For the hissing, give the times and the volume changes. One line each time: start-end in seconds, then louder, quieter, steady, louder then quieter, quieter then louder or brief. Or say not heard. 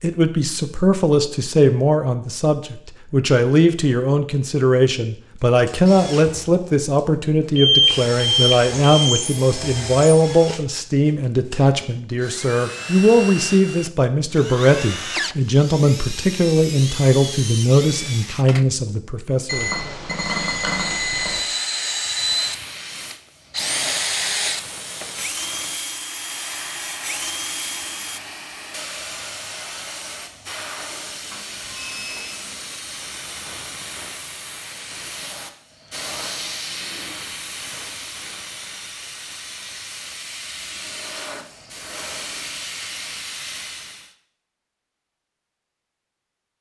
22.2-44.1 steady.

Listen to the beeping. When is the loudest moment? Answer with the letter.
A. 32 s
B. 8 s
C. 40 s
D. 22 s
B.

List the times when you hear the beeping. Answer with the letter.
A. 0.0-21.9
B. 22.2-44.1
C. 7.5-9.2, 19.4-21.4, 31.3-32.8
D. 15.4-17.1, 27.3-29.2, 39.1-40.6
C.